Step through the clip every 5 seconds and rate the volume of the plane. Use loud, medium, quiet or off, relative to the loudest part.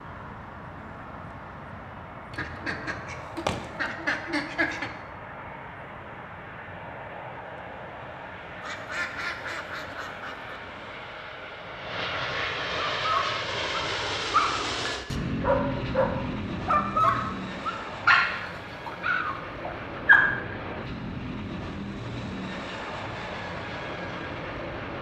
medium, medium, loud, loud, loud.